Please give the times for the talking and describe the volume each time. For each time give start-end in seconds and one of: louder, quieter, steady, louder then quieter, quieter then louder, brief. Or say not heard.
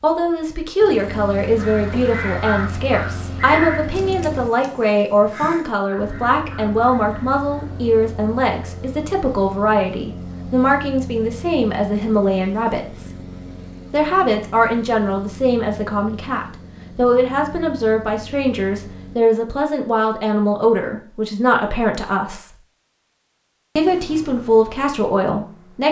0.0-13.1 steady
13.9-22.5 steady
23.8-25.8 brief.